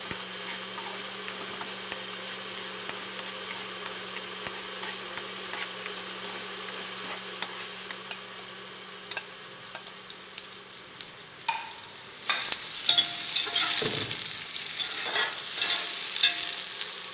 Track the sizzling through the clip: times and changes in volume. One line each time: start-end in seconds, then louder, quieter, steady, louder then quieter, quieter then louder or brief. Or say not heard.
0.0-17.0 louder.